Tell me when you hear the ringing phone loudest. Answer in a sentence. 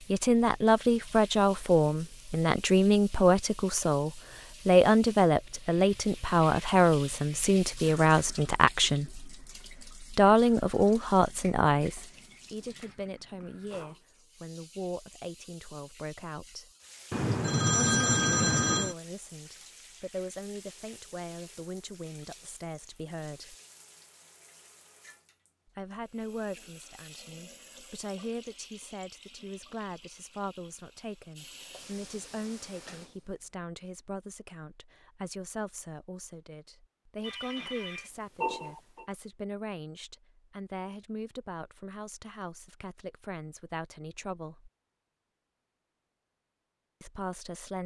The loudest moment of the ringing phone is at 18 seconds.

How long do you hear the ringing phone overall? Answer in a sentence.
You can hear the ringing phone for 4 seconds altogether.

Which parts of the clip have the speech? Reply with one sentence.
The speech can be heard from 0.1 to 9.2 s, from 10.0 to 16.7 s, from 17.8 to 23.6 s, from 25.8 to 44.7 s and from 47.0 to 47.8 s.